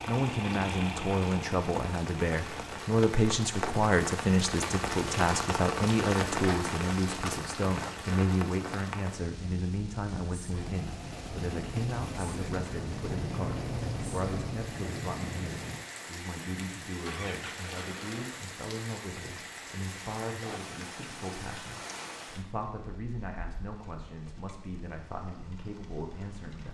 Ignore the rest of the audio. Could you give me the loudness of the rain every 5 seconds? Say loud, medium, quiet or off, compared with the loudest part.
loud, loud, medium, medium, medium, quiet.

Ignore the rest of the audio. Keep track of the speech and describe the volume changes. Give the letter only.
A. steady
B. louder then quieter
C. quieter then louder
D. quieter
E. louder
D.